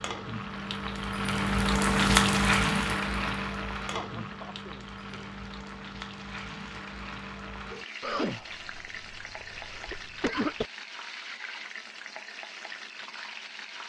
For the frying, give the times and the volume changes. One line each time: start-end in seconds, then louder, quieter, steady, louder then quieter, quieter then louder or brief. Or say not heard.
0.0-13.8 quieter.